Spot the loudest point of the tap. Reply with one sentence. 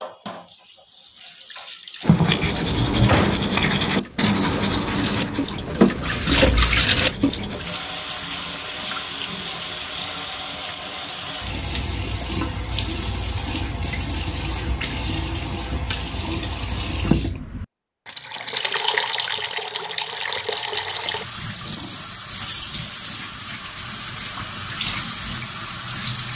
The loudest moment of the tap is at 6 seconds.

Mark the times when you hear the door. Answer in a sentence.
You can hear the door from 2.5 to 3.5 s.